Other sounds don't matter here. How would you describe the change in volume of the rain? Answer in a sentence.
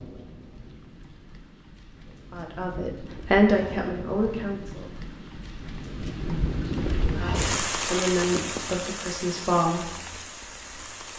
The volume of the rain goes up, then down.